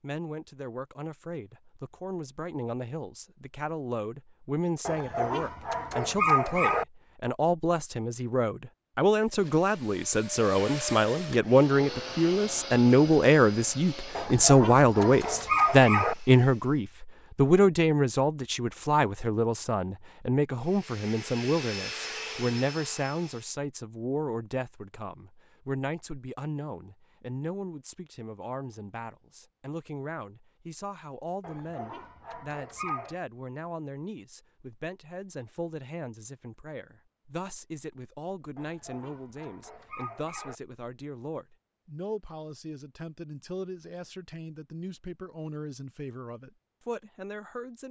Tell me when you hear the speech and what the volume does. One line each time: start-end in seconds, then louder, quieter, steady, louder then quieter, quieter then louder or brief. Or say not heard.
0.0-47.8 louder then quieter.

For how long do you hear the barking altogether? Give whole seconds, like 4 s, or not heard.
8 s.